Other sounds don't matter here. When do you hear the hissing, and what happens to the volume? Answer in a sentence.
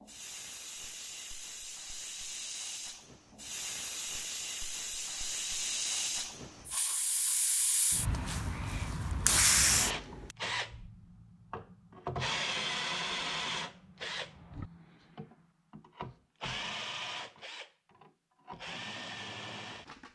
The hissing can be heard from 0.0 to 10.3 s, getting louder.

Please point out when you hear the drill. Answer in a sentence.
You can hear the drill from 9.6 to 20.1 s.